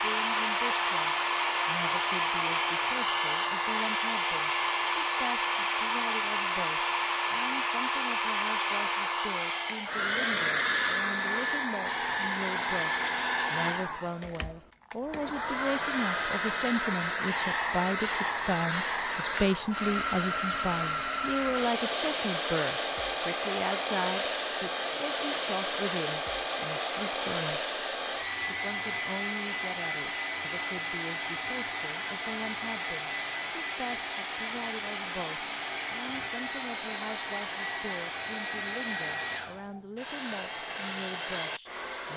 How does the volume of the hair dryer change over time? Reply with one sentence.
The volume of the hair dryer goes down.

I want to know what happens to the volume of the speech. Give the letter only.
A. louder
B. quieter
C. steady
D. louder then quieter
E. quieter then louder
D.